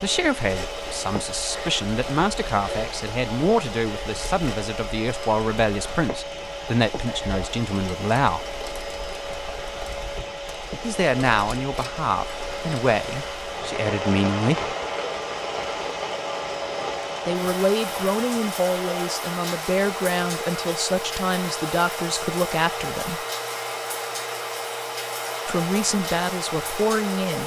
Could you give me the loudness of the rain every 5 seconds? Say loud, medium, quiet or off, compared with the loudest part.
medium, medium, loud, loud, loud, loud.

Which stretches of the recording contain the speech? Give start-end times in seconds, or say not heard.
0.0-8.5, 10.8-14.8, 17.2-23.2, 25.4-27.4.